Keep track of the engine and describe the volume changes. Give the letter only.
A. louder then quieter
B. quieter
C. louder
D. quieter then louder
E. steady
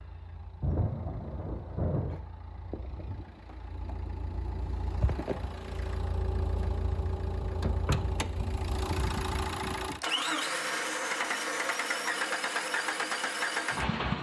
C.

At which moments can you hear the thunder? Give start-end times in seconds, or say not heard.
0.6-2.2.